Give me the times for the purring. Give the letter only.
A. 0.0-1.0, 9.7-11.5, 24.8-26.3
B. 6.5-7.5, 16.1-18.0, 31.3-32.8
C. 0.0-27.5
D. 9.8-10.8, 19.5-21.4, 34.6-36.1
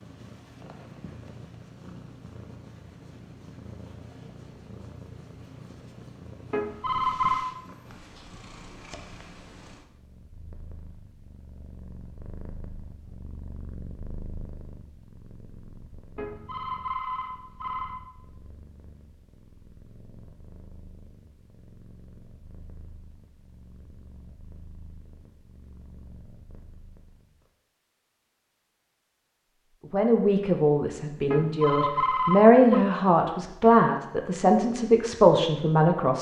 C.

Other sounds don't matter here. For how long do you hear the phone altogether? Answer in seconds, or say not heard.
4 s.